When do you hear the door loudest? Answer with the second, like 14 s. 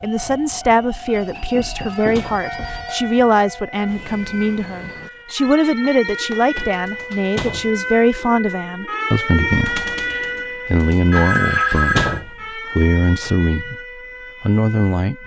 12 s.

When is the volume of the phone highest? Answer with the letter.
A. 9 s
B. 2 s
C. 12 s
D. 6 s
C.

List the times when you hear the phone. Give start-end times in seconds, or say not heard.
1.1-3.0, 5.2-7.1, 11.1-12.2.